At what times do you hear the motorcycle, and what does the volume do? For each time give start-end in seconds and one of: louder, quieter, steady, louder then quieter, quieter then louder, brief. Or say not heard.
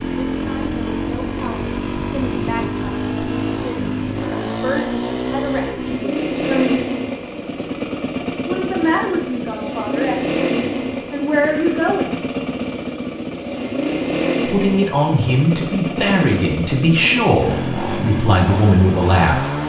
0.0-19.6 steady.